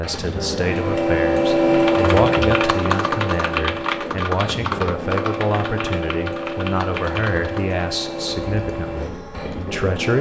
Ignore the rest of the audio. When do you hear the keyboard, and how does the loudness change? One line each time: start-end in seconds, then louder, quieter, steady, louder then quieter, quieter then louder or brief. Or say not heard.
1.7-9.8 quieter.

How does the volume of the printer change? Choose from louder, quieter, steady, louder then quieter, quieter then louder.
quieter.